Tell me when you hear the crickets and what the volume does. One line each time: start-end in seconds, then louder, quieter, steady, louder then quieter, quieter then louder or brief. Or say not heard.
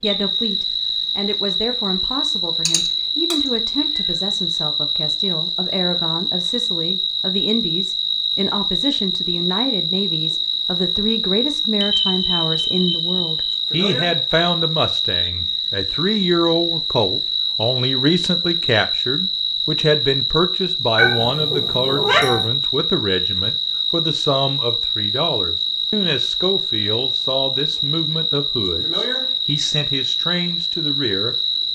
0.0-31.6 steady.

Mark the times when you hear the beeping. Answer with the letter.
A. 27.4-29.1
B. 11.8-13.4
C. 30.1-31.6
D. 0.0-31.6
B.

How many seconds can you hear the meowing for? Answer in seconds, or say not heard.
3 s.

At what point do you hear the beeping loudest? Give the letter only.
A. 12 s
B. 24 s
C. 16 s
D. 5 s
A.